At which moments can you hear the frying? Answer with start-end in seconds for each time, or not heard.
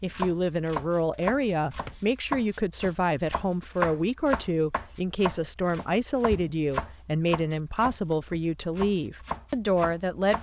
not heard.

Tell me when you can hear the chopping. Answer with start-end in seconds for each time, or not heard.
0.0-10.3.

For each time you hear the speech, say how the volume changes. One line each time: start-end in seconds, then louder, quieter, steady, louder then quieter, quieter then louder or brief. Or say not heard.
0.0-10.3 steady.